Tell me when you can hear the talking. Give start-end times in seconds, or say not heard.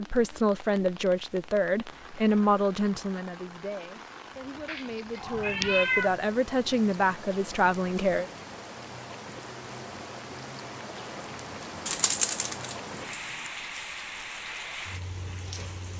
0.0-8.3.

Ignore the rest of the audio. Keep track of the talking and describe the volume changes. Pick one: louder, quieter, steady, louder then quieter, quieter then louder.
quieter then louder.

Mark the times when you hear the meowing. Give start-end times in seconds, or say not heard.
4.7-6.1, 11.8-13.5.